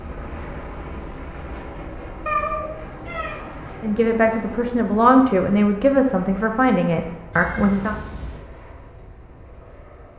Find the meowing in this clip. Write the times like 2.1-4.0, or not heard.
2.2-3.4, 7.3-8.4.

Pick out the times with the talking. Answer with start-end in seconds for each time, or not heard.
3.8-8.0.